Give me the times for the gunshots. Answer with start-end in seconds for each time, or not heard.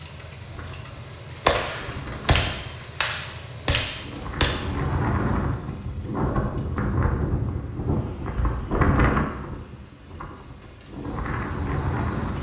1.4-4.5.